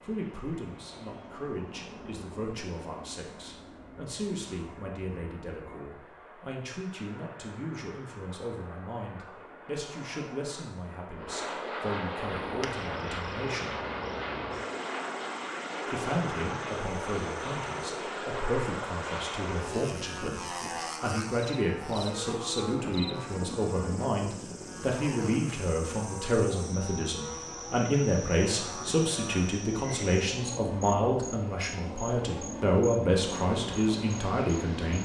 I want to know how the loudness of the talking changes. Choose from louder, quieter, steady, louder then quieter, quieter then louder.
louder.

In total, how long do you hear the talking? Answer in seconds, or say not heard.
32 s.